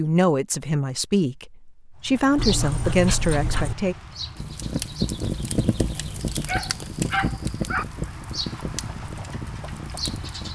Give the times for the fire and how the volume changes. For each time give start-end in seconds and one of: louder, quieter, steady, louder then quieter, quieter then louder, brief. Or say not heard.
4.3-10.4 quieter.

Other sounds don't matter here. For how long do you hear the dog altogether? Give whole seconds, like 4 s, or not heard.
3 s.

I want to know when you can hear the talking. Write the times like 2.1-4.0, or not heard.
0.0-4.0.